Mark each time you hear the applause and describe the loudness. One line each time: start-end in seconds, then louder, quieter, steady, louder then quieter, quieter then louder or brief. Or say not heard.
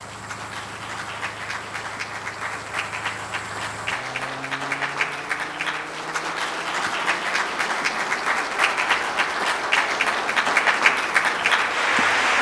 0.0-12.3 louder.